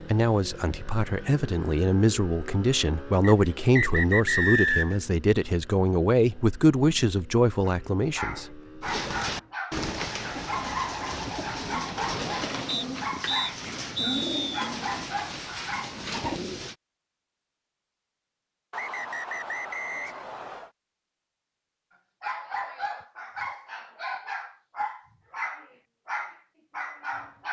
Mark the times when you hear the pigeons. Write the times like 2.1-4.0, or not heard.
8.8-16.8.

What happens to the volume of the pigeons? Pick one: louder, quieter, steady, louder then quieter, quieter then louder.
steady.